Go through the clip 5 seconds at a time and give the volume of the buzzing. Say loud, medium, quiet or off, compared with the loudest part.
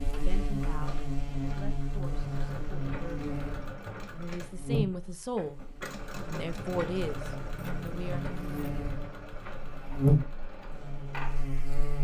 medium, quiet, loud.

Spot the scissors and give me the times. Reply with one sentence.
The scissors can be heard from 7.5 to 8.9 s.